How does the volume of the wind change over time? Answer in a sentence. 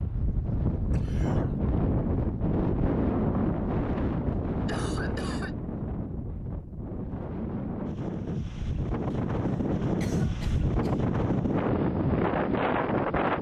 The loudness of the wind goes down, then up.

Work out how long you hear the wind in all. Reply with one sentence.
You can hear the wind for 13 seconds altogether.